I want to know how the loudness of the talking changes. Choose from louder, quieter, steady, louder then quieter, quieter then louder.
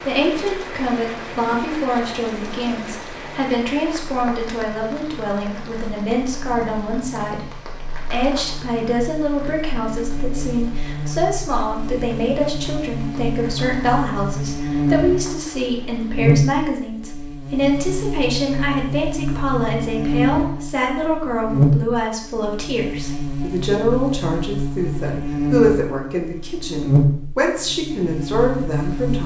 steady.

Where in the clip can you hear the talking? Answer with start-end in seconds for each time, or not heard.
0.1-29.2.